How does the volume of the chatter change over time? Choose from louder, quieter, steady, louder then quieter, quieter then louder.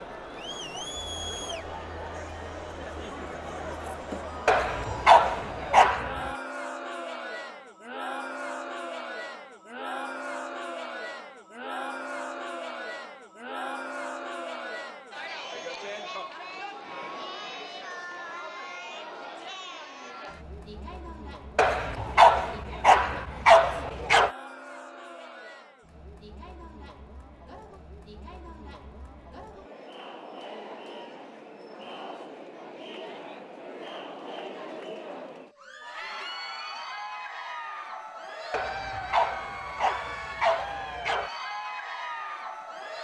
quieter then louder.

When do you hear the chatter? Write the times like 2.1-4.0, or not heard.
0.0-43.0.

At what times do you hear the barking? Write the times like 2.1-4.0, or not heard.
4.5-6.3, 21.6-24.3, 38.5-41.3.